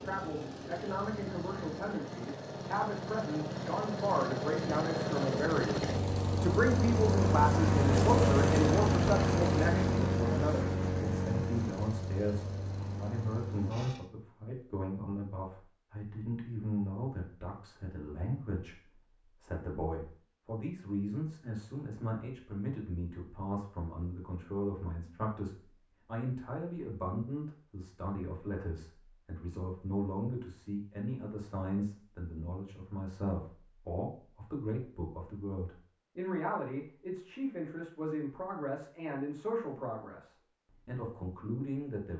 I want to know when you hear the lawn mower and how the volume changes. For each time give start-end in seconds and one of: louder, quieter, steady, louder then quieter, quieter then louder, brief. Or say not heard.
0.0-14.1 louder then quieter.